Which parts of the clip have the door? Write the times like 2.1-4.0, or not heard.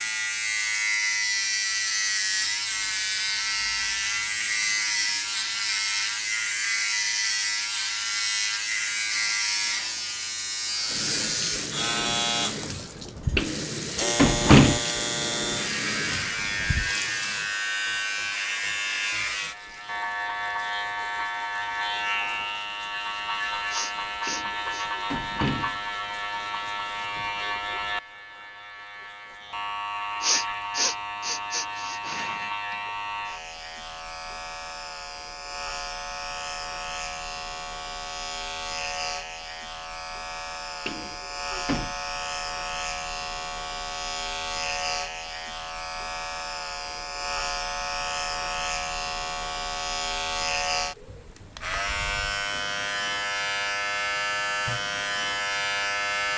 13.3-14.8, 24.2-25.8, 40.9-42.0.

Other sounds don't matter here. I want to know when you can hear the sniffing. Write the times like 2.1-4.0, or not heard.
23.7-24.9, 30.2-32.5.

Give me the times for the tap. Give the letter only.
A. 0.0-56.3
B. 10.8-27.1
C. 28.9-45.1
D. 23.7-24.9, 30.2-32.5
B.